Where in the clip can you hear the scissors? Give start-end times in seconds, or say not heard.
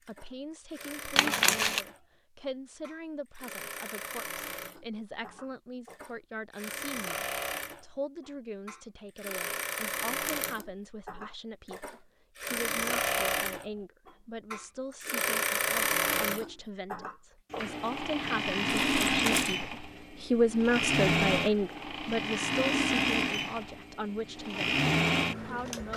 not heard.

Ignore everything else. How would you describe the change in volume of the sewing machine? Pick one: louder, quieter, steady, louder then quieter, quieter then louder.
louder.